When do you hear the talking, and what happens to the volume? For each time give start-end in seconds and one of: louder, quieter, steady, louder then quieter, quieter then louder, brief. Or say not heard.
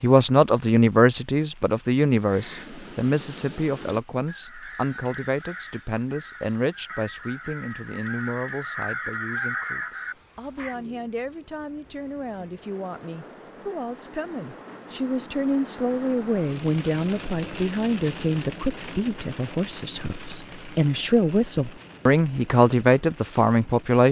0.0-24.0 quieter then louder.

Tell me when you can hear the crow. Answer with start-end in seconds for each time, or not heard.
2.2-10.8.